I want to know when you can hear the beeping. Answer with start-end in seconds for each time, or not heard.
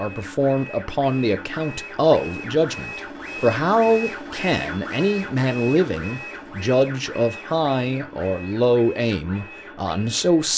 not heard.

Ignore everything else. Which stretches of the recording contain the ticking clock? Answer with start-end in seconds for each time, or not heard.
not heard.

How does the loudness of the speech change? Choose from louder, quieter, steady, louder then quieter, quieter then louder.
steady.